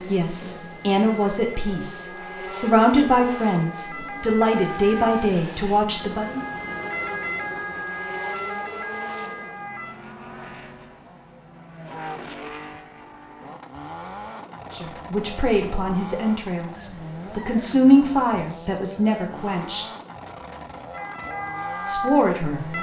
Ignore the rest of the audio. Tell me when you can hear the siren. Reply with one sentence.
The siren can be heard from 0.1 to 9.9 s and from 20.9 to 22.7 s.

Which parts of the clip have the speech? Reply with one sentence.
You can hear the speech from 0.1 to 6.5 s, from 14.7 to 19.9 s and from 21.9 to 22.7 s.